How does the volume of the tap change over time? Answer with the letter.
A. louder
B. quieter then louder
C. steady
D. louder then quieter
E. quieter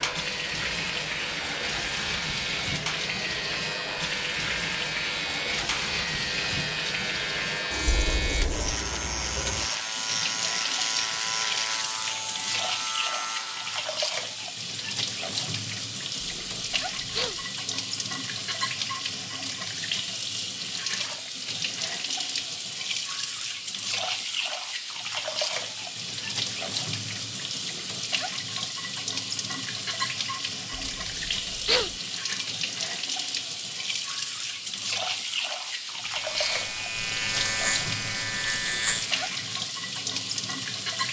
C.